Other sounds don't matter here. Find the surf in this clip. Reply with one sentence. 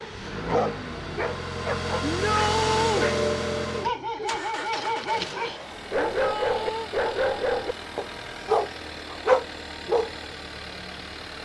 You can't hear the surf here.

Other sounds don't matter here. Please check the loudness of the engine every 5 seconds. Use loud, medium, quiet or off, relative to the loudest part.
loud, medium, medium.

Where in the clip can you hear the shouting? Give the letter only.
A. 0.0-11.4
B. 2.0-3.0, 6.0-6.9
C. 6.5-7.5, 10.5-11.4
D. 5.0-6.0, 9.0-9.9
B.